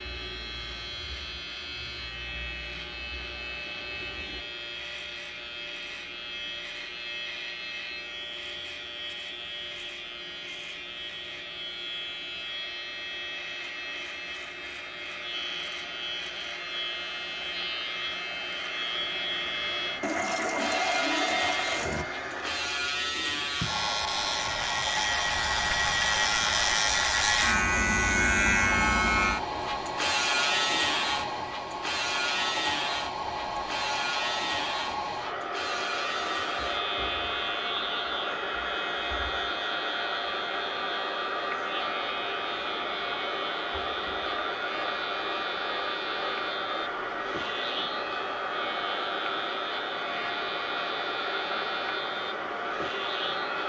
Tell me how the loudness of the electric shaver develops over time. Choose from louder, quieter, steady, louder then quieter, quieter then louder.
louder then quieter.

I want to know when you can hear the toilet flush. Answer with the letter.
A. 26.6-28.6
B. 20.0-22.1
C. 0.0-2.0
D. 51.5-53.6
B.